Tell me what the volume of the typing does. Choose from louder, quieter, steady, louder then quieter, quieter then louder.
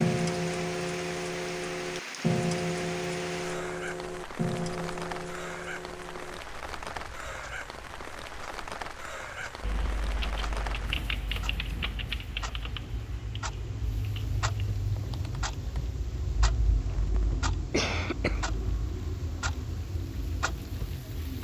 quieter then louder.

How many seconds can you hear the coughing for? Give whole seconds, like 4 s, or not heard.
2 s.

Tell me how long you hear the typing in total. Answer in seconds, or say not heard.
6 s.